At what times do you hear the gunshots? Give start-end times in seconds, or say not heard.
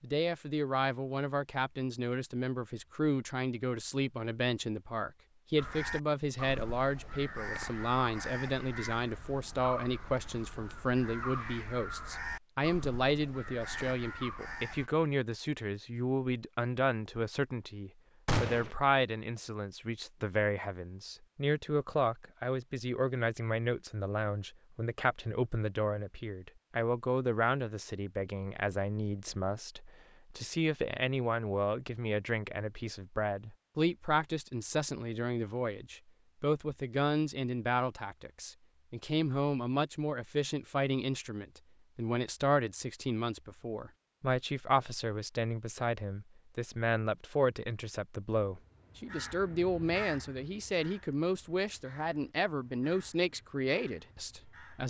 18.2-18.7.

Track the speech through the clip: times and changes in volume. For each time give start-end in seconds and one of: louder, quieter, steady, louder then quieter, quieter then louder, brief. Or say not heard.
0.0-54.8 steady.